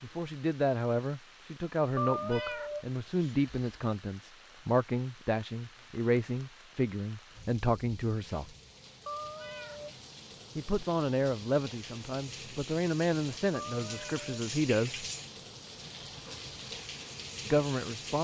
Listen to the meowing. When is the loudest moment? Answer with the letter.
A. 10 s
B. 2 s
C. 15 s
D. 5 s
B.